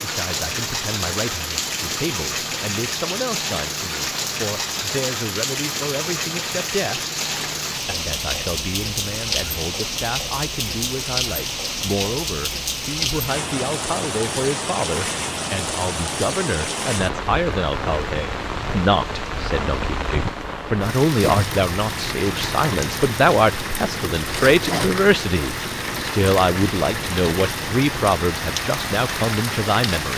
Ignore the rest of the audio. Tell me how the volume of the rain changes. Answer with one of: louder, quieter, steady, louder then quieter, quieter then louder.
steady.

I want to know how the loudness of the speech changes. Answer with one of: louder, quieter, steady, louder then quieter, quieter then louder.
louder.